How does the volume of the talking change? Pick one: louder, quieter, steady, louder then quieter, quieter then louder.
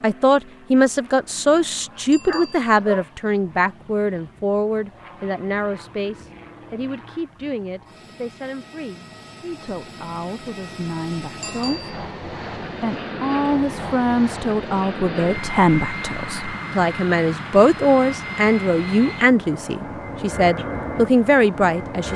quieter then louder.